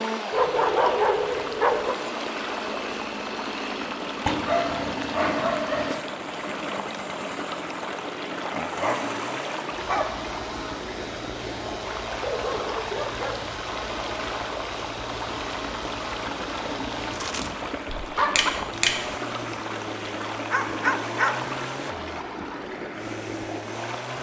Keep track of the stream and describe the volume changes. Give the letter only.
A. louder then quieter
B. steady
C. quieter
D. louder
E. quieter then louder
B.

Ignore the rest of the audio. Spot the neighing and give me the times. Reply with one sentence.
The neighing can be heard from 17.9 to 18.9 s.